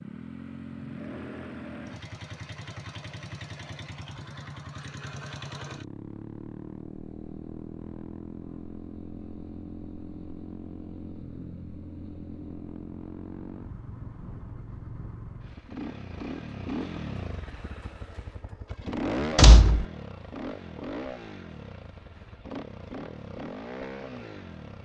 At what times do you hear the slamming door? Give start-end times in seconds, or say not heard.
19.4-19.9.